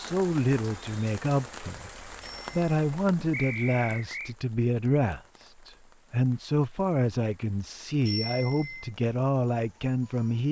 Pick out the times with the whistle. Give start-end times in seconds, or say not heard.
3.3-4.3.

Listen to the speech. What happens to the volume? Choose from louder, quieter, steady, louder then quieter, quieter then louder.
steady.